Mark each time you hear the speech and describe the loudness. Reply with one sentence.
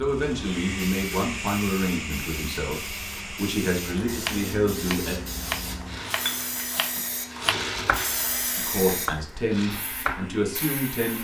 The speech can be heard from 0.0 to 5.2 s, getting quieter then louder; and briefly from 8.6 to 11.1 s.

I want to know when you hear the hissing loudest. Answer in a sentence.
The volume of the hissing peaks at 8 seconds.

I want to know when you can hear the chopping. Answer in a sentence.
You can hear the chopping from 4.0 to 10.3 s.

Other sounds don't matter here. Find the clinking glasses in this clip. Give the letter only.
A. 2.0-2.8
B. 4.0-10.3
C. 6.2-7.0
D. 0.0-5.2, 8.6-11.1
C.